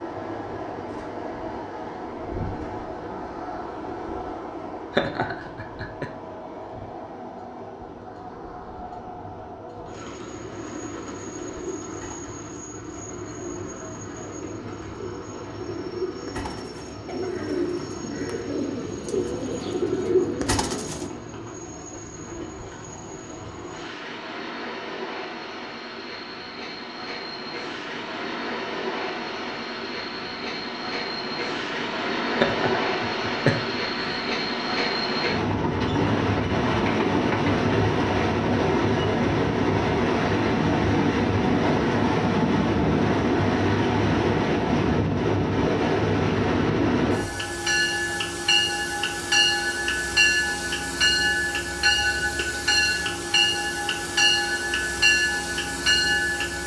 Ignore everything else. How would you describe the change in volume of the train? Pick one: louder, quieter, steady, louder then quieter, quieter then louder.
louder.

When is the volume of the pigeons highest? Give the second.
20 s.